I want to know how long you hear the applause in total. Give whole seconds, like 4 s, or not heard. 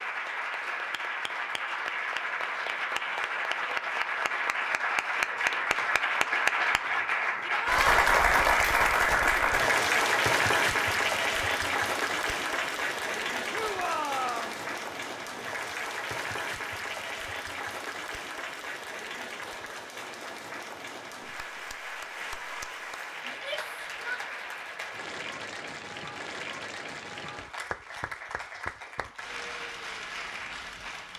31 s.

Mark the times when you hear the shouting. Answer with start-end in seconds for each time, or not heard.
7.4-7.8, 13.5-14.6, 23.2-24.2.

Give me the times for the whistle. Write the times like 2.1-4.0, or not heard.
not heard.